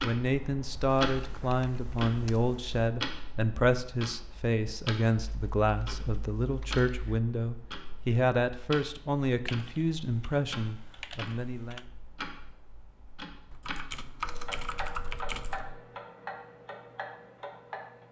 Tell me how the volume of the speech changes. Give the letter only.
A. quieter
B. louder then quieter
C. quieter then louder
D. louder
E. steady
E.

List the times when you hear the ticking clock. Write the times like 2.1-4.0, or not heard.
0.0-18.0.